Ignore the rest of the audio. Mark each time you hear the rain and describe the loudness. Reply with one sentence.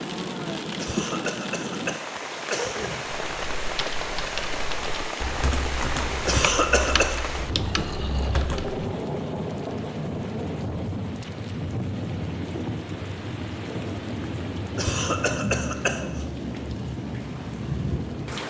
The rain can be heard from 0.0 to 18.4 s, at a steady volume.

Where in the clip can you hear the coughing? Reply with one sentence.
You can hear the coughing from 0.8 to 3.0 s, from 6.2 to 7.2 s and from 14.8 to 16.2 s.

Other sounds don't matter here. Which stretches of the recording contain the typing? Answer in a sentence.
The typing can be heard from 3.2 to 8.9 s.